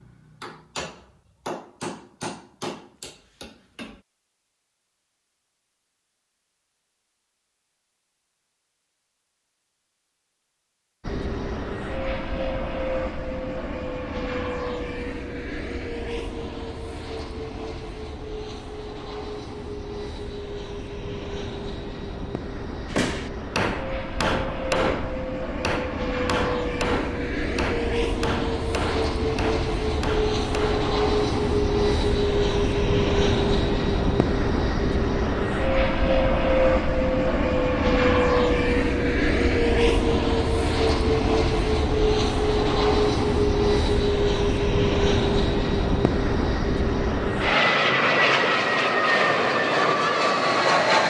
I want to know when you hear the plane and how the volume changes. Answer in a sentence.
The plane can be heard from 11.0 to 51.0 s, getting louder.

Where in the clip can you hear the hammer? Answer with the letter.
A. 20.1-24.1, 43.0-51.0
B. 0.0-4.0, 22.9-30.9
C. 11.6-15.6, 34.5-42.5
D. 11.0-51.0
B.